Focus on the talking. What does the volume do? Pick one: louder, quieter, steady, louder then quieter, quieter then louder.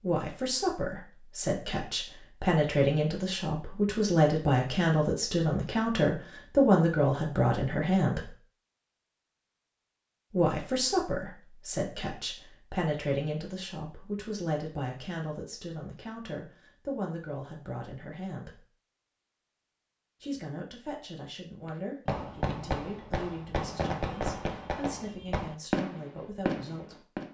quieter.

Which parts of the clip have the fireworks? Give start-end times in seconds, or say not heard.
21.6-27.2.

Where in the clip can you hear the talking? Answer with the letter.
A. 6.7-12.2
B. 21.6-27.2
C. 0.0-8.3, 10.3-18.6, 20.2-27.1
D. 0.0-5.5
C.